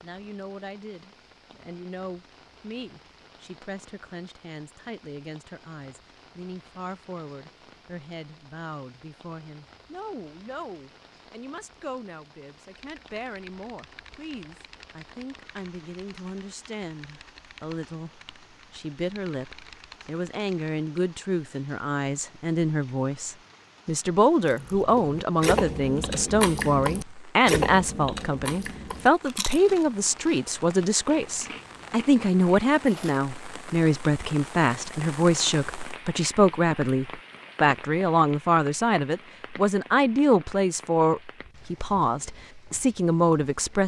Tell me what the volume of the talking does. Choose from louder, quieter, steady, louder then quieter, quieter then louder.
louder.